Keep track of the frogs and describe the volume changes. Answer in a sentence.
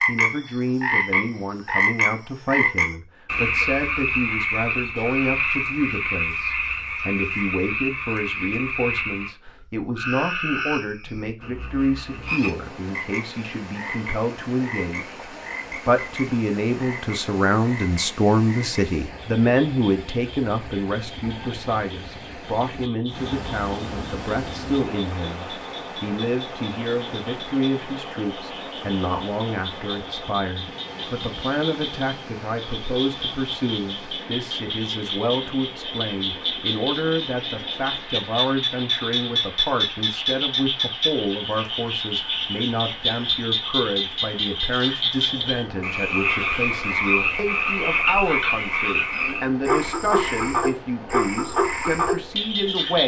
The loudness of the frogs goes down, then up.